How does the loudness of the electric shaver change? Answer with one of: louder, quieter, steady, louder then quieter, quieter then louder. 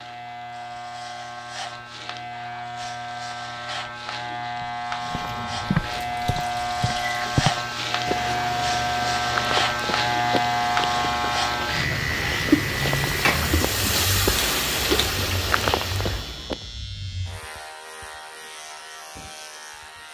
louder then quieter.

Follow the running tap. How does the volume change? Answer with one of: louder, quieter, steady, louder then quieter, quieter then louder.
louder.